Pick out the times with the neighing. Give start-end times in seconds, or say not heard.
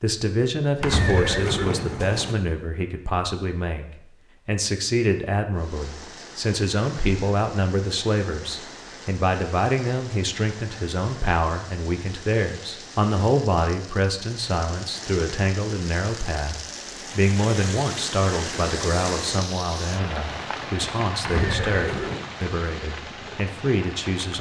0.8-2.4, 21.2-22.3.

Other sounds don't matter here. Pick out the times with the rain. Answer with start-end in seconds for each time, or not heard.
5.5-24.3.